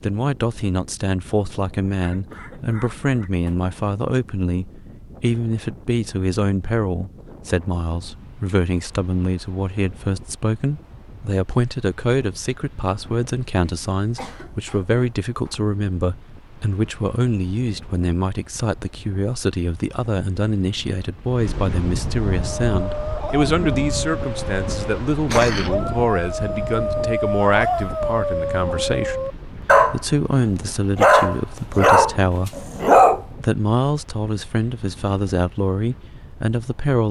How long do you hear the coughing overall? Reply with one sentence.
You can hear the coughing for 4 seconds altogether.